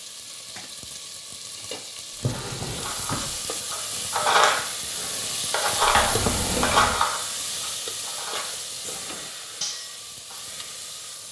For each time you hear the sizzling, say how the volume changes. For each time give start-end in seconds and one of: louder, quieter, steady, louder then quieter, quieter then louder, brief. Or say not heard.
0.0-11.2 louder then quieter.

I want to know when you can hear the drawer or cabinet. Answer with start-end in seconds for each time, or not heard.
2.1-3.4, 5.8-7.0.